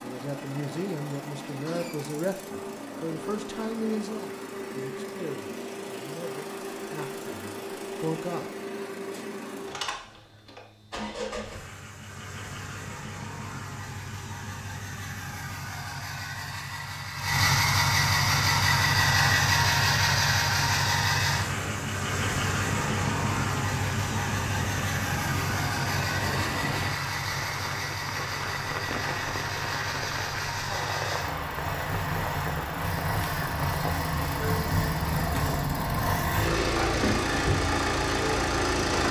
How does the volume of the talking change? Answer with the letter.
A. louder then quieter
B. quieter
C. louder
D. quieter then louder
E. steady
B.